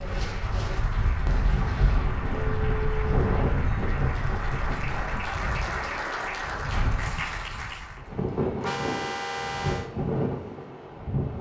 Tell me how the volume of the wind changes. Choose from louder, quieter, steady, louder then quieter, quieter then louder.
quieter then louder.